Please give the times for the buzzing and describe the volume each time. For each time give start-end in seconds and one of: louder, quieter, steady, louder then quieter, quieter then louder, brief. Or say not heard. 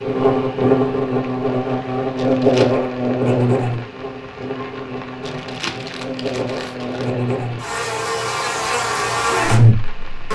0.0-10.3 quieter then louder.